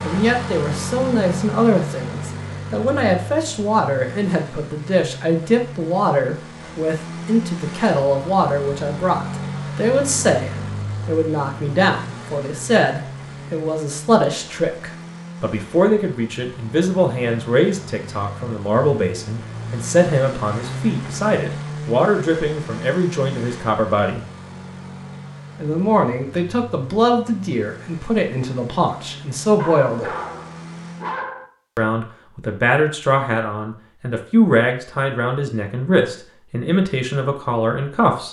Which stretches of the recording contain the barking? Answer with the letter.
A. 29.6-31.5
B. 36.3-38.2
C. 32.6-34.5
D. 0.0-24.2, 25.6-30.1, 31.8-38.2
A.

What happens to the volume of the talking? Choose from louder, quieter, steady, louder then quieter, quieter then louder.
steady.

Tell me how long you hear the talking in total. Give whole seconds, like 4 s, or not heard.
35 s.